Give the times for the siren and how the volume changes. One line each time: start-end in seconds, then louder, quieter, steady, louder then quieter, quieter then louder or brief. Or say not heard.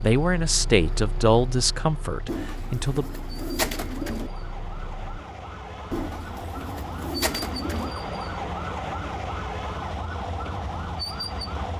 0.0-11.7 louder.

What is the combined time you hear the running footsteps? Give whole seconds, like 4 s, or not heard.
not heard.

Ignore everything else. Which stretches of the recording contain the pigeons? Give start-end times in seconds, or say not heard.
2.2-4.3, 5.9-7.9.